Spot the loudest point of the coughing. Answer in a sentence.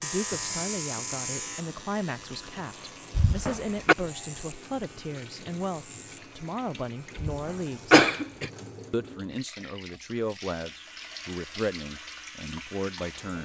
The loudest moment of the coughing is at 8 seconds.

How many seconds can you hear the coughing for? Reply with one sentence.
You can hear the coughing for 2 seconds altogether.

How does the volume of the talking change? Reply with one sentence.
The volume of the talking stays about the same.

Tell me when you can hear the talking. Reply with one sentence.
You can hear the talking from 0.0 to 8.1 s and from 8.9 to 13.4 s.